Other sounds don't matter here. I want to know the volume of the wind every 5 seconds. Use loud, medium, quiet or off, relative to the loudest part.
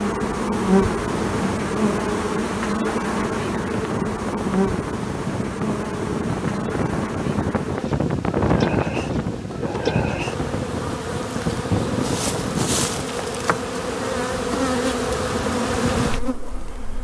medium, loud, loud, off.